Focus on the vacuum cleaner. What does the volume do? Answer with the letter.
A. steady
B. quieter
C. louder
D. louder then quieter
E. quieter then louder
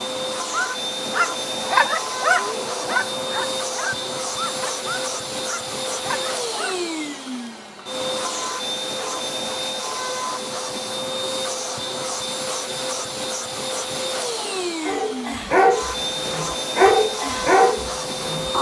A.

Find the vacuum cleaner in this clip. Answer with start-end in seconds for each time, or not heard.
0.0-18.5.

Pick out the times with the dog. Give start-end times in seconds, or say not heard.
0.5-6.8, 14.8-18.5.